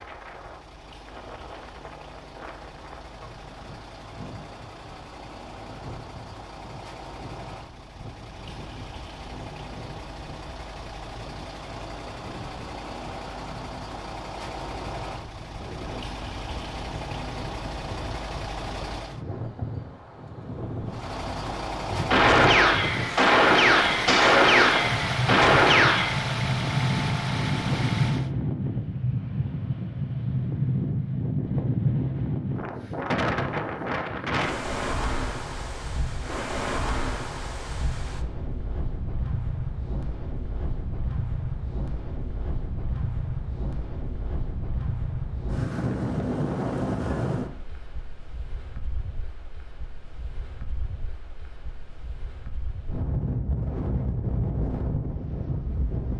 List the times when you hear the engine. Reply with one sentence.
The engine can be heard from 0.0 to 19.2 s and from 20.9 to 28.3 s.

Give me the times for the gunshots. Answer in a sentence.
You can hear the gunshots from 22.1 to 26.2 s.